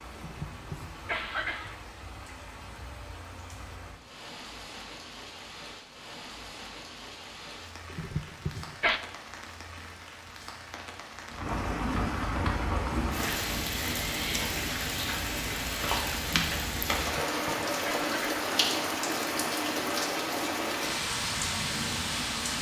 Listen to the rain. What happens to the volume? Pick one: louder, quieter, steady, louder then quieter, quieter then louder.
louder.